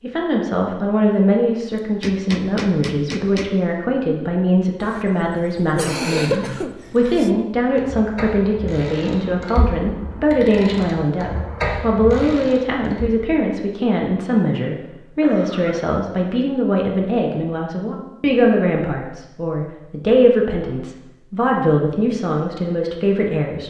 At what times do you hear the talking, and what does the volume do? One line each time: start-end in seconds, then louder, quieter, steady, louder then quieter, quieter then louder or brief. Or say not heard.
0.0-23.6 steady.